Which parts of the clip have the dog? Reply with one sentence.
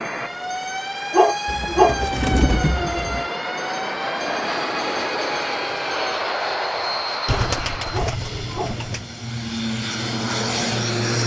You can hear the dog from 1.1 to 2.0 s and from 7.9 to 8.8 s.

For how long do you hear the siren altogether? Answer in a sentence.
You can hear the siren for 6 seconds altogether.